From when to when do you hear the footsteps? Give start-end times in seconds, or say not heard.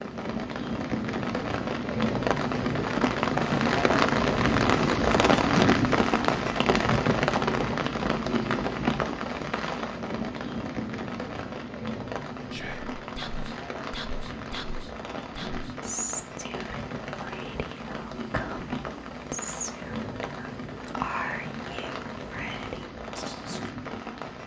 not heard.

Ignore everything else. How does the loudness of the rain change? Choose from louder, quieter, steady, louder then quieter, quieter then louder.
quieter.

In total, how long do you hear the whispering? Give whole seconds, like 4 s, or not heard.
11 s.